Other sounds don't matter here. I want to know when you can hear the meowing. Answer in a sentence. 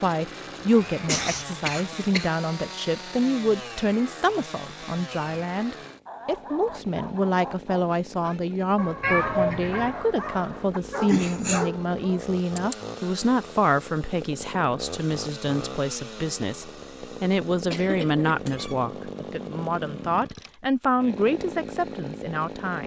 The meowing can be heard from 9.0 to 9.9 s.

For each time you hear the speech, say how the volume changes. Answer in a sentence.
You can hear the speech from 0.0 to 22.8 s, at a steady volume.